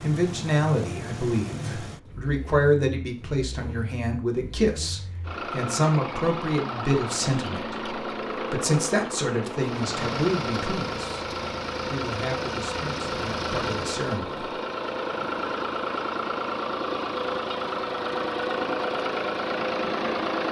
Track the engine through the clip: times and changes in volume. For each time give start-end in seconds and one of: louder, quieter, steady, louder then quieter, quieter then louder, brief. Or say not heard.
0.0-20.4 louder.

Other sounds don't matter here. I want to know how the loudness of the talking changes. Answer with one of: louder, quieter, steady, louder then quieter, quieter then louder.
quieter.